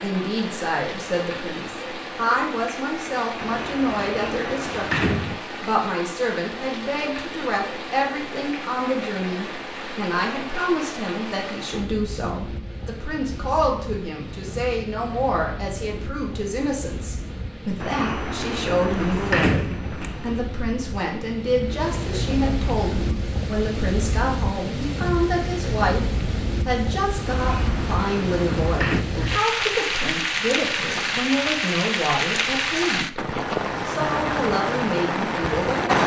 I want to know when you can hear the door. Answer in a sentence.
The door can be heard from 3.4 to 5.4 s, from 17.8 to 20.4 s and from 27.2 to 29.1 s.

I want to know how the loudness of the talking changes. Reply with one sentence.
The loudness of the talking stays about the same.